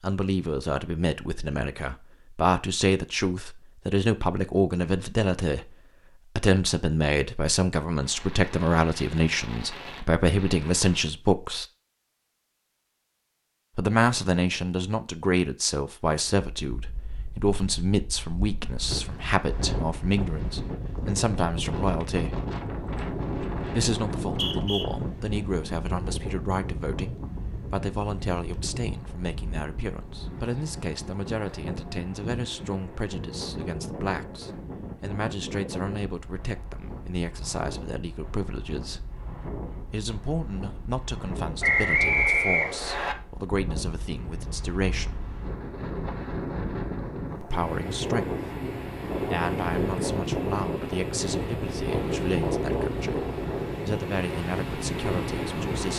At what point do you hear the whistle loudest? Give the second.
42 s.